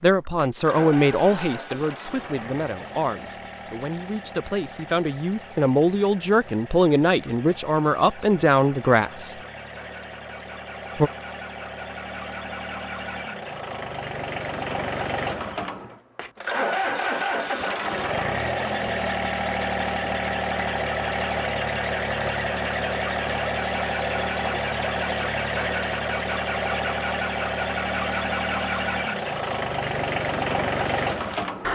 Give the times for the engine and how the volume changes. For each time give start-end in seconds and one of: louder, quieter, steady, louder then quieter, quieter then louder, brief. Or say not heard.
0.0-31.6 louder.